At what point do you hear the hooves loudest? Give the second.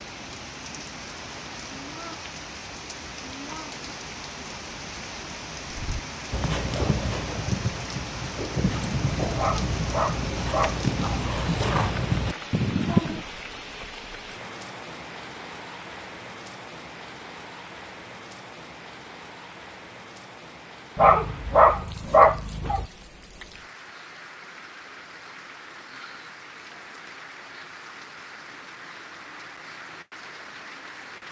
13 s.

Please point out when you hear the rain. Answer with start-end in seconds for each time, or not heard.
0.0-31.2.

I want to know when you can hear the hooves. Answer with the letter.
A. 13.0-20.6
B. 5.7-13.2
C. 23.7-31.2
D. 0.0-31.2
B.